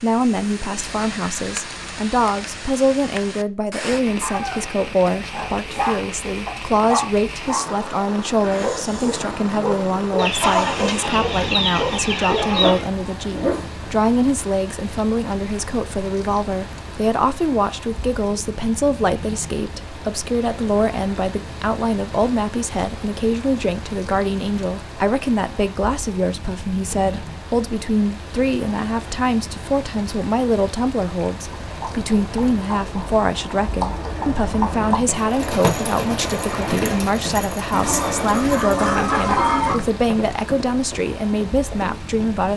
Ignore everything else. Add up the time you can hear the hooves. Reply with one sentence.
You can hear the hooves for 11 seconds altogether.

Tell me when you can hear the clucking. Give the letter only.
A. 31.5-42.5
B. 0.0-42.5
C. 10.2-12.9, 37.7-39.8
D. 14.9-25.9
C.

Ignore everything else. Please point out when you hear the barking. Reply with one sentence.
You can hear the barking from 4.2 to 4.7 s and from 5.3 to 13.8 s.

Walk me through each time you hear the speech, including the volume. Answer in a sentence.
The speech can be heard from 0.0 to 42.5 s, at a steady volume.